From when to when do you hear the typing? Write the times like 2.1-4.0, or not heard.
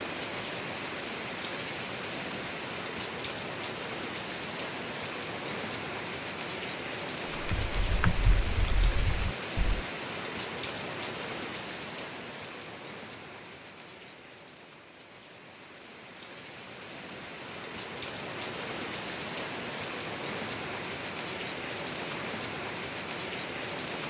7.3-9.8.